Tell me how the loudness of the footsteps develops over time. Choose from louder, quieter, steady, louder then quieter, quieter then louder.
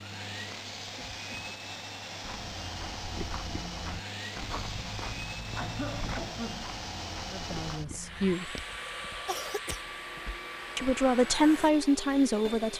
quieter.